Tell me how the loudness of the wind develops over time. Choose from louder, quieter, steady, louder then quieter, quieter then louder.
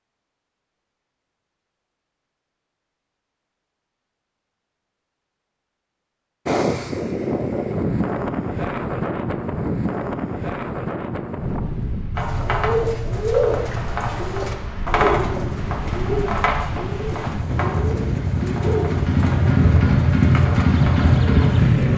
quieter then louder.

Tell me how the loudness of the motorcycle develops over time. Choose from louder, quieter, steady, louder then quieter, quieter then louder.
louder.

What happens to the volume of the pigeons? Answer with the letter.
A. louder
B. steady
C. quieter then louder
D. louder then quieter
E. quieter
E.